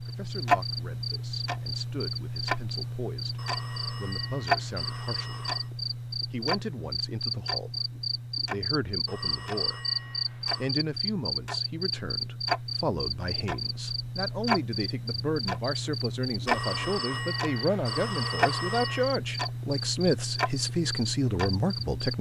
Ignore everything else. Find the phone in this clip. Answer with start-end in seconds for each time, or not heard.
3.4-5.7, 9.1-10.8, 16.4-19.1.